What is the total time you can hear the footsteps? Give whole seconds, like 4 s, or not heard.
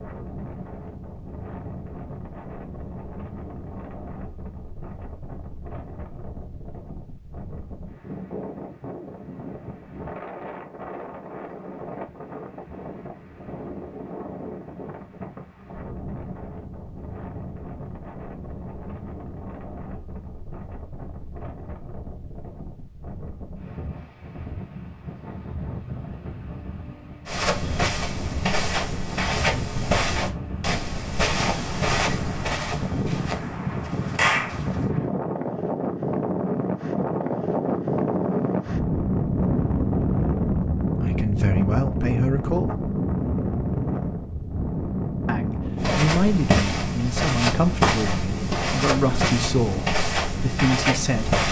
13 s.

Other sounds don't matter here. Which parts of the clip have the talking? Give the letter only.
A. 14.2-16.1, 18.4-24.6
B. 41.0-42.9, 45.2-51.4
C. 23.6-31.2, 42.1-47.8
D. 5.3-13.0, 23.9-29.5
B.